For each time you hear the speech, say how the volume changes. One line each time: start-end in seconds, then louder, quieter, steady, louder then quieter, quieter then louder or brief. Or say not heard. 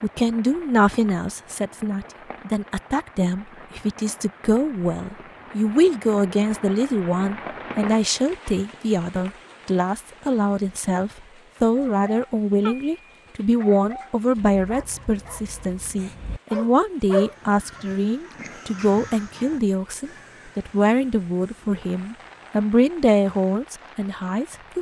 0.0-24.7 steady.